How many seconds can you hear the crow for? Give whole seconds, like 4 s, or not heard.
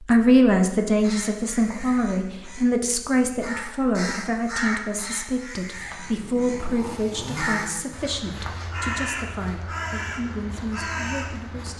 11 s.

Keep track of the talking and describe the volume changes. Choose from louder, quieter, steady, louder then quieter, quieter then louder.
quieter.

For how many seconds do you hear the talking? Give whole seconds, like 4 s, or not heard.
12 s.